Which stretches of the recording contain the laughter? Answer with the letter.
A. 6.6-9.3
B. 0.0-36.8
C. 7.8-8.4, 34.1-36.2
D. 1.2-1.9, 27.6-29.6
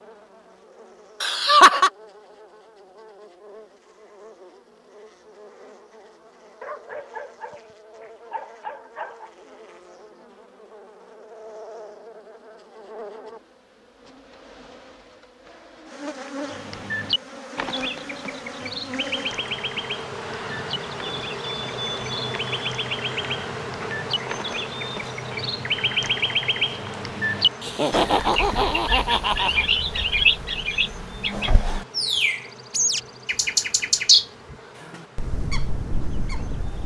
D.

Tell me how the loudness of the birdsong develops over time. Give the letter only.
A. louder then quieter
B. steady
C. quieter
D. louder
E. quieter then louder
D.